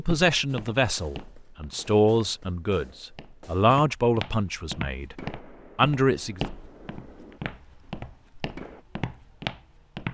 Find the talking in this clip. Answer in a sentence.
The talking can be heard from 0.0 to 6.4 s.